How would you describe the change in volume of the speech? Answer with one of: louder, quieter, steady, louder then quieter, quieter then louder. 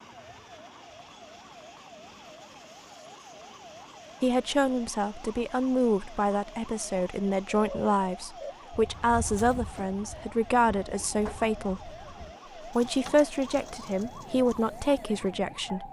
steady.